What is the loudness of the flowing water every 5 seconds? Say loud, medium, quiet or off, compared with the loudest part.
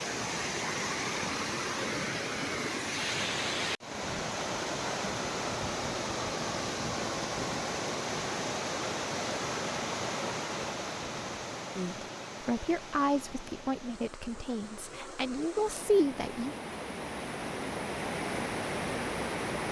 loud, loud, medium, loud.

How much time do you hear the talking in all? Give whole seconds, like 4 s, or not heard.
5 s.